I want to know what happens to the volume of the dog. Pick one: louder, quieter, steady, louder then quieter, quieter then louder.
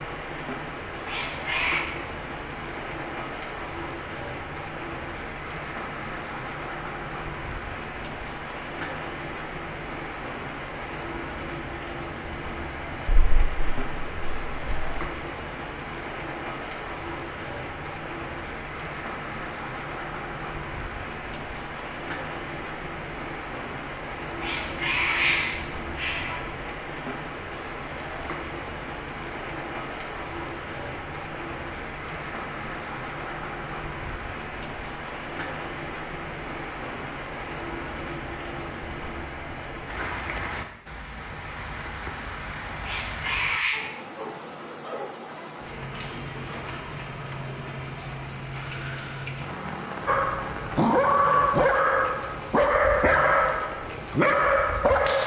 steady.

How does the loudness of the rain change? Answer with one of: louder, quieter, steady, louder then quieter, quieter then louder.
steady.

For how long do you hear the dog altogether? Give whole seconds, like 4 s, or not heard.
5 s.